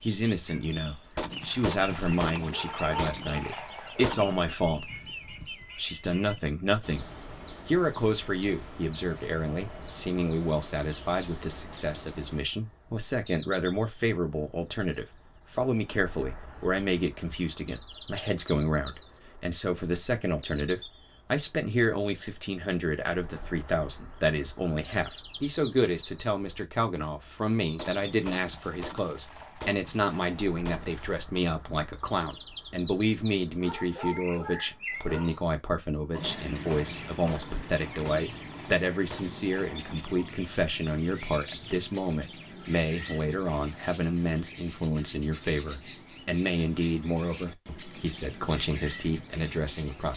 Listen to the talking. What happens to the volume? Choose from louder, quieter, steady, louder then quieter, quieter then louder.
steady.